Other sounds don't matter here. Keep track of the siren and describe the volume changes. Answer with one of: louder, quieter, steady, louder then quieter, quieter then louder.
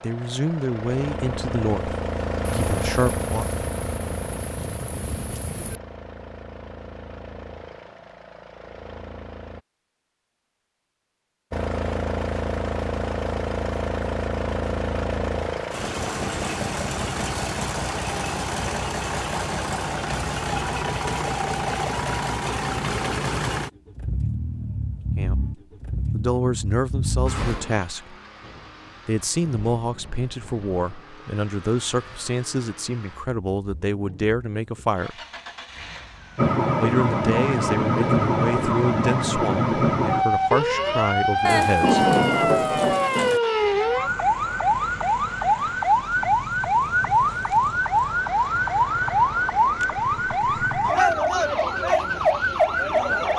steady.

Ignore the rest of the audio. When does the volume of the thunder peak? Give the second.
42 s.